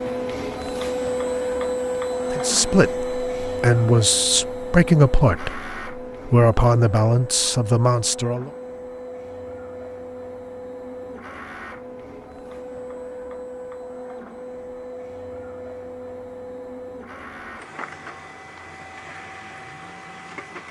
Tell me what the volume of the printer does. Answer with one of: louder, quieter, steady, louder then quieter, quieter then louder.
quieter.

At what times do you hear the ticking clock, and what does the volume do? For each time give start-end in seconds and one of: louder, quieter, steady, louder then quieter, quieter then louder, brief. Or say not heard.
not heard.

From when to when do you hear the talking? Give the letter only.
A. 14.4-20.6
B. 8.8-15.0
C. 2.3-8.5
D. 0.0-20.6
C.